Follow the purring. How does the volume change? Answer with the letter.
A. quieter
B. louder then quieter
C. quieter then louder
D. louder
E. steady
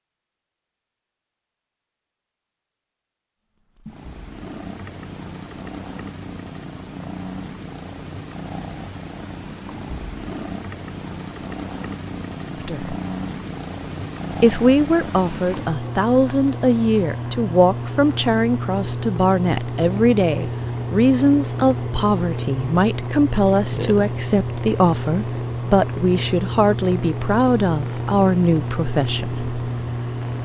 D.